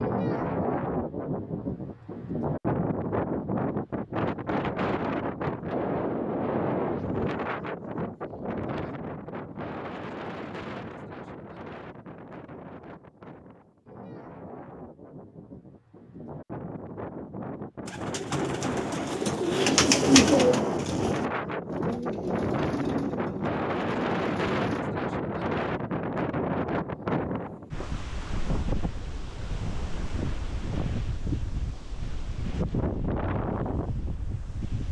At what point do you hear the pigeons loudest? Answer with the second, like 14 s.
20 s.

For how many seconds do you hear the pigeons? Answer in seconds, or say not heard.
7 s.